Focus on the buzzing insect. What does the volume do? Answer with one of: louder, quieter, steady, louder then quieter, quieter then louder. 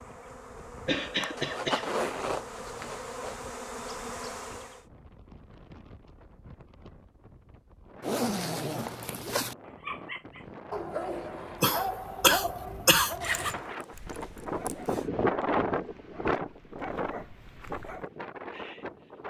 louder.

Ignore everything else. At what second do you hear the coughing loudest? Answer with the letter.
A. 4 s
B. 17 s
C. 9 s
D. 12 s
D.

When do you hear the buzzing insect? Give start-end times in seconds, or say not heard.
0.0-4.8.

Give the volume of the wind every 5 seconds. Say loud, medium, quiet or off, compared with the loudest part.
quiet, quiet, medium, loud.